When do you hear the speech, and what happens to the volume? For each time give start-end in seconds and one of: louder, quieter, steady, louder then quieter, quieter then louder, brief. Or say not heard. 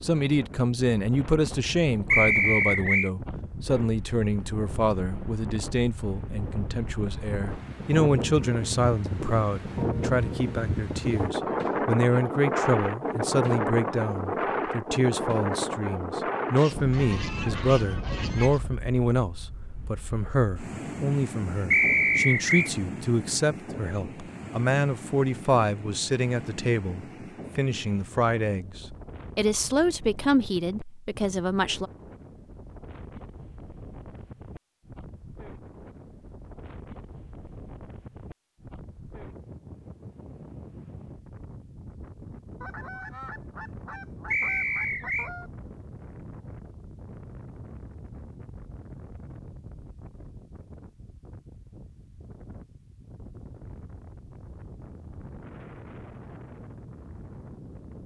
0.0-31.9 steady.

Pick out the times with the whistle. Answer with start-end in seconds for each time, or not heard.
2.1-3.1, 21.7-22.7, 44.3-45.3.